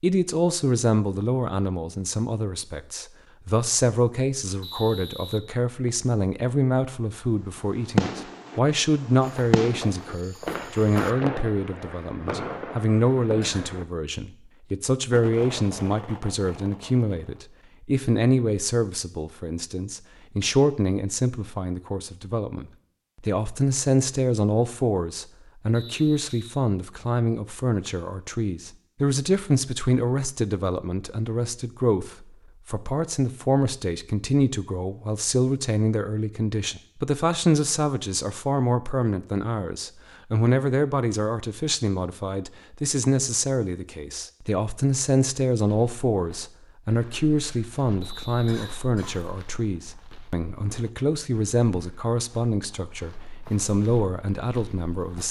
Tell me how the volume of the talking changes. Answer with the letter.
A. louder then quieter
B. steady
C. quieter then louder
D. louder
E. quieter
B.